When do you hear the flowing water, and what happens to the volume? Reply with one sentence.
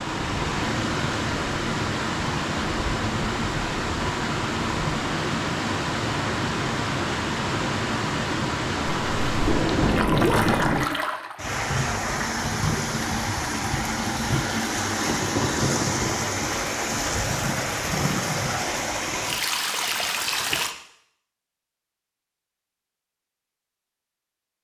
You can hear the flowing water from 0.0 to 20.8 s, at a steady volume.